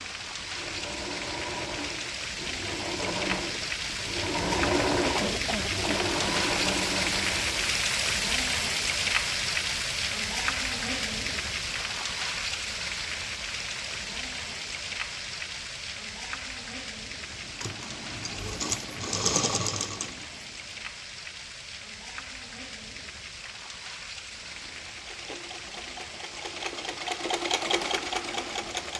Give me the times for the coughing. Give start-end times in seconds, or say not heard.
5.2-6.1.